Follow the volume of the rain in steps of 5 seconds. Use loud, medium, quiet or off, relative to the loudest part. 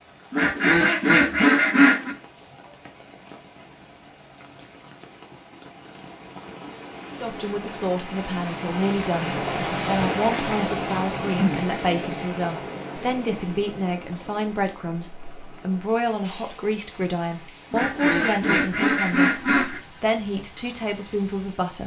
quiet, loud, loud, quiet, quiet.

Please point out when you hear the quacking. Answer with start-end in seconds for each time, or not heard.
0.3-2.1, 17.7-19.8.